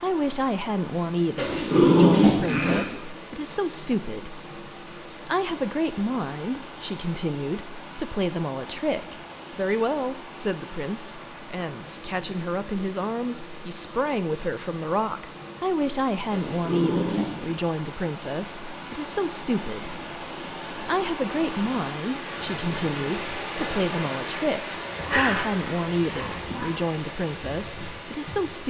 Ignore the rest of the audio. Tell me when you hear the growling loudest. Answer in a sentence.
The loudest moment of the growling is at 2 seconds.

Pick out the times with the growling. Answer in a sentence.
The growling can be heard from 1.4 to 2.9 s, from 16.3 to 17.6 s and from 25.0 to 26.6 s.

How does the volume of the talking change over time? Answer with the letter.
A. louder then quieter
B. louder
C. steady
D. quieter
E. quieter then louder
C.